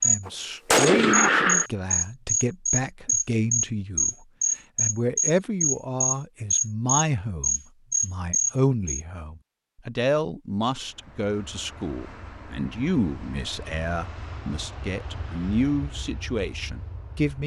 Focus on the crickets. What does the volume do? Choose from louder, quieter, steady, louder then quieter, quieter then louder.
steady.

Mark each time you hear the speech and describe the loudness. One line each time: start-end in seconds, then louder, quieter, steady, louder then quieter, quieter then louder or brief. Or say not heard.
0.0-4.2 quieter then louder
4.8-17.4 steady.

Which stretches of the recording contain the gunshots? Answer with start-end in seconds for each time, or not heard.
0.2-1.7.